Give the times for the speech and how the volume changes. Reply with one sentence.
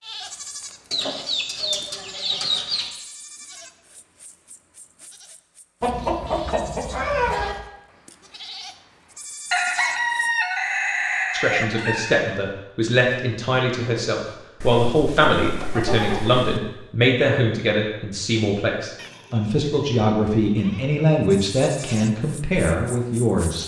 You can hear the speech from 11.3 to 23.6 s, at a steady volume.